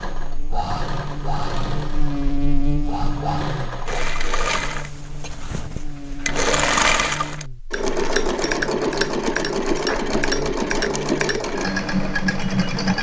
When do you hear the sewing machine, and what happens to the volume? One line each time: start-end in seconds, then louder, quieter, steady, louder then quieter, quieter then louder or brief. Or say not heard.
0.0-12.9 louder.